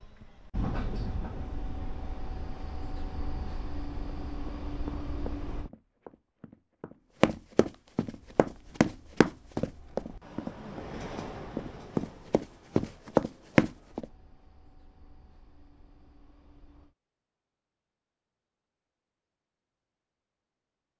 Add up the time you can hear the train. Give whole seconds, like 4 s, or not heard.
15 s.